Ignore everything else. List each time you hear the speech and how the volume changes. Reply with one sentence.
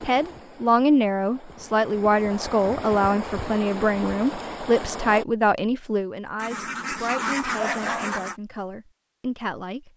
You can hear the speech from 0.0 to 9.9 s, getting quieter.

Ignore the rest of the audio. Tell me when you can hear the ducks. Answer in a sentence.
You can hear the ducks from 6.3 to 8.3 s.